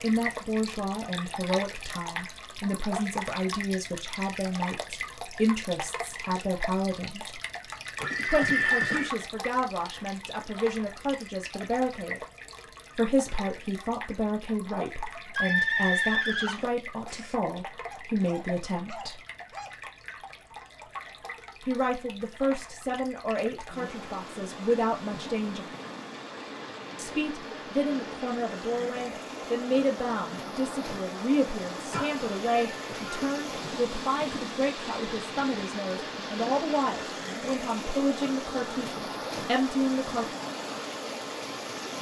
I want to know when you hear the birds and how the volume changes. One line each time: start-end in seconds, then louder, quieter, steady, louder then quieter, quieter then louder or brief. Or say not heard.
not heard.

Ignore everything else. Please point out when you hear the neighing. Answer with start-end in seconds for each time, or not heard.
8.0-9.1, 15.3-17.4, 31.9-33.4.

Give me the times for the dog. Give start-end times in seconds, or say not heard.
17.9-19.8.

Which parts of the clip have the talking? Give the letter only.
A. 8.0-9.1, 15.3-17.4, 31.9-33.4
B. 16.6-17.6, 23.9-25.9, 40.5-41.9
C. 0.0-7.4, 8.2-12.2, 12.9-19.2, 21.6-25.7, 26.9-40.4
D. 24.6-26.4
C.